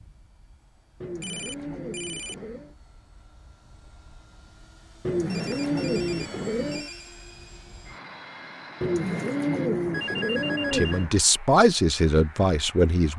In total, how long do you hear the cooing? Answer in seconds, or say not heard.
6 s.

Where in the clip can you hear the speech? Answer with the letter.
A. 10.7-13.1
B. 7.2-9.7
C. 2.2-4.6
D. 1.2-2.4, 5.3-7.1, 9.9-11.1
A.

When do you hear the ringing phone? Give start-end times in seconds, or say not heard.
1.2-2.4, 5.3-7.1, 9.9-11.1.